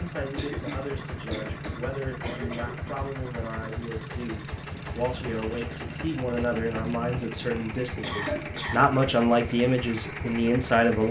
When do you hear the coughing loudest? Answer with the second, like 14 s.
8 s.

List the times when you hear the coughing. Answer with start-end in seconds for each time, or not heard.
0.3-3.0, 7.5-8.8.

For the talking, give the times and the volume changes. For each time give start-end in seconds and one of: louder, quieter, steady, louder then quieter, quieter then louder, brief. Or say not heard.
0.0-11.0 louder.